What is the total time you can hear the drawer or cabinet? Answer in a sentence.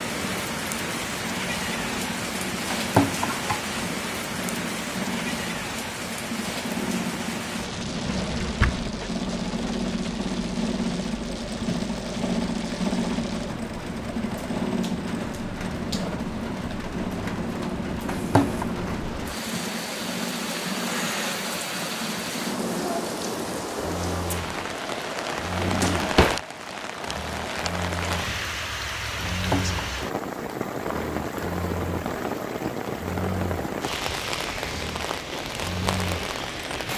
You can hear the drawer or cabinet for 2 seconds altogether.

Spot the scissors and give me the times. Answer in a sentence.
You can hear the scissors from 2.8 to 3.6 s, from 18.1 to 18.7 s and from 29.3 to 29.8 s.